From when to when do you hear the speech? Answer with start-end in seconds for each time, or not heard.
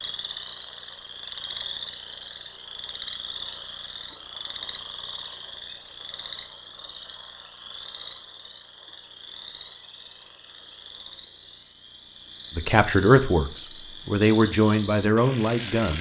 12.6-15.9.